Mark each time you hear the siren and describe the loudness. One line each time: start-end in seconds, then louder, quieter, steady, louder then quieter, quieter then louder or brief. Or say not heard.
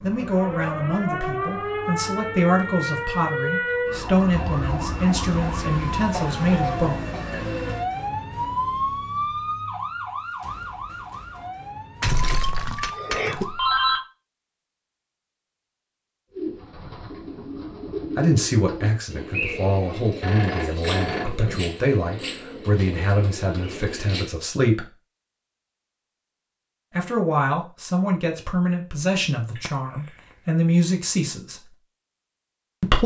0.0-14.0 quieter.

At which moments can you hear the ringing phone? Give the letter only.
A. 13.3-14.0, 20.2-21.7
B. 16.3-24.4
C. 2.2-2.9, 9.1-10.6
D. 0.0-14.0
A.